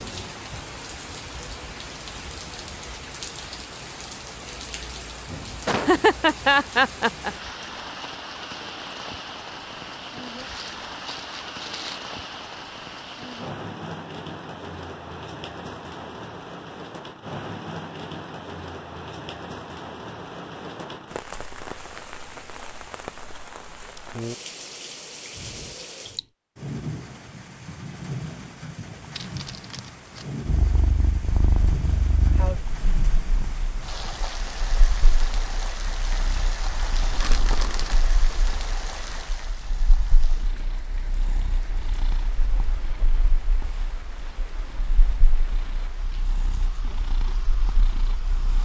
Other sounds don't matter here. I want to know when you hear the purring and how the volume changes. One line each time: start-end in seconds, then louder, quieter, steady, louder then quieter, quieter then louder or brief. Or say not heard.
30.4-48.5 quieter.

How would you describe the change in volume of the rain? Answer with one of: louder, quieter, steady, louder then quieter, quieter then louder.
quieter.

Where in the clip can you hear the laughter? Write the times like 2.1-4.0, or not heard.
5.7-7.3.